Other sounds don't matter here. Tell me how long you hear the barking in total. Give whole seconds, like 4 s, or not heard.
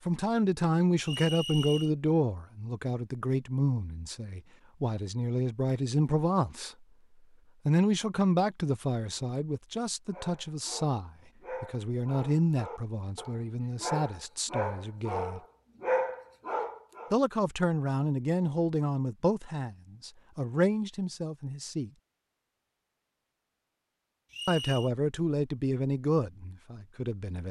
7 s.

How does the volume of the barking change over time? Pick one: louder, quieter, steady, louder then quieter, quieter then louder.
louder.